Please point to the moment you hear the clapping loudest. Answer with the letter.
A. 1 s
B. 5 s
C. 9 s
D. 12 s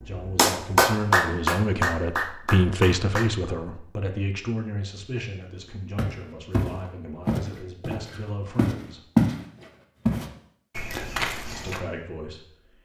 A.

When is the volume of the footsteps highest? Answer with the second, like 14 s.
9 s.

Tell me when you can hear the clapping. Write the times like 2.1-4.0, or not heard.
0.0-3.3.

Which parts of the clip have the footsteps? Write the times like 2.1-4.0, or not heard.
6.0-11.8.